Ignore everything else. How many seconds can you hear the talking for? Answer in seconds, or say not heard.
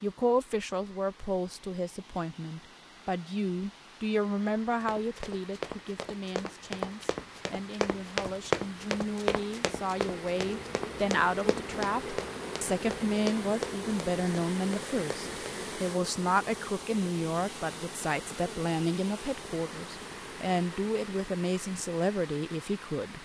23 s.